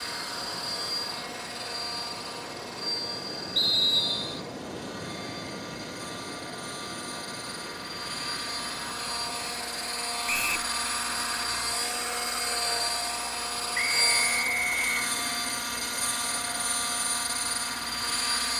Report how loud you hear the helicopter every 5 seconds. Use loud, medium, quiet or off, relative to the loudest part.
medium, medium, loud, loud.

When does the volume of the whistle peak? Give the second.
4 s.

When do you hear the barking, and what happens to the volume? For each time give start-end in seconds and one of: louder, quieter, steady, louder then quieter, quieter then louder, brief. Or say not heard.
not heard.